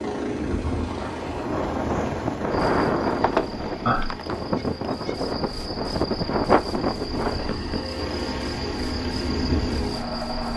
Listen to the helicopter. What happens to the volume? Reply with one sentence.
The volume of the helicopter goes down, then up.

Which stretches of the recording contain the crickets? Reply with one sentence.
The crickets can be heard from 2.5 to 10.5 s.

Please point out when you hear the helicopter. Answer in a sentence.
The helicopter can be heard from 0.0 to 10.5 s.